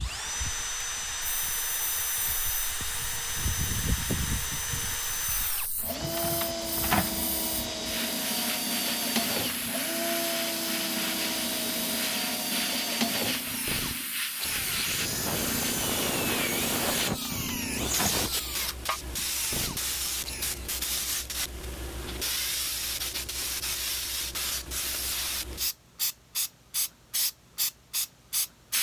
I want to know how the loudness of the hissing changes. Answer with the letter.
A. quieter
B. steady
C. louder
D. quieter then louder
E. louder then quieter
C.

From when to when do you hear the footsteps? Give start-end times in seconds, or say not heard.
not heard.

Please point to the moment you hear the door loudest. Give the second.
7 s.